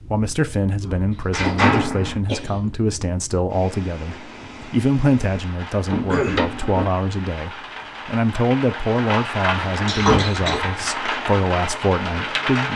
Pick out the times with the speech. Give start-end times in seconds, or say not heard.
0.1-12.7.